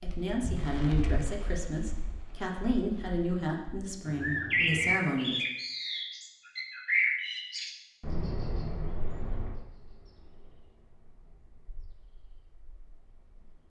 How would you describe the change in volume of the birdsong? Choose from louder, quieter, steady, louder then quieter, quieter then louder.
louder then quieter.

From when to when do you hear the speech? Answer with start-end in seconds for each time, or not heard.
0.0-5.4.